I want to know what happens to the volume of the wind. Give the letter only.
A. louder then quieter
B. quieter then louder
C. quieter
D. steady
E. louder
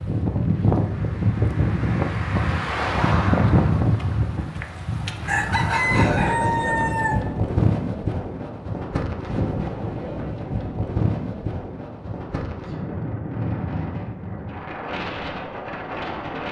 C.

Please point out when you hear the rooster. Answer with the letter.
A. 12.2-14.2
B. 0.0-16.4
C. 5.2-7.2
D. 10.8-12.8
C.